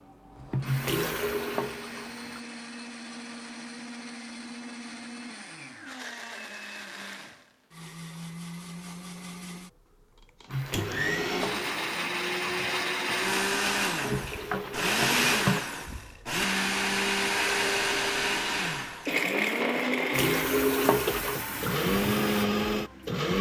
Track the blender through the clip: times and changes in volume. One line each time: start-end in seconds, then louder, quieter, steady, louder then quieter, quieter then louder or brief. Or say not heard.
0.0-23.3 louder.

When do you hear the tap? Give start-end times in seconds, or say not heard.
0.0-2.4, 10.4-15.7, 20.1-23.2.